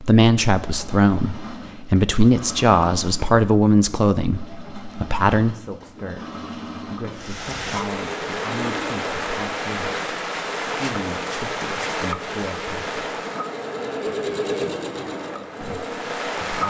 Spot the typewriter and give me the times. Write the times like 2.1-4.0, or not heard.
not heard.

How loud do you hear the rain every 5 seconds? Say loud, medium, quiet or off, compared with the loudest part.
off, loud, loud, loud.